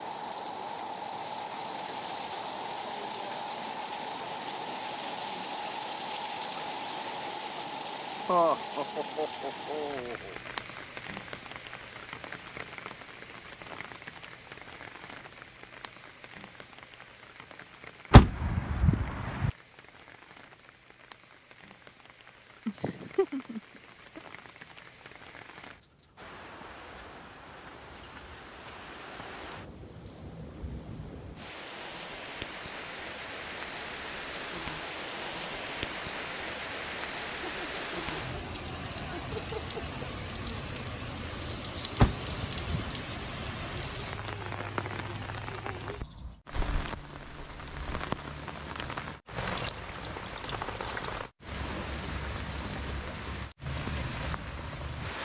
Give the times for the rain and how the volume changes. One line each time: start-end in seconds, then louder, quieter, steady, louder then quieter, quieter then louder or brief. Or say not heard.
0.0-55.2 quieter then louder.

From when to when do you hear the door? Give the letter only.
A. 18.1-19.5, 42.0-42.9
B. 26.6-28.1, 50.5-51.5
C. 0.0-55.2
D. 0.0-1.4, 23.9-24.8
A.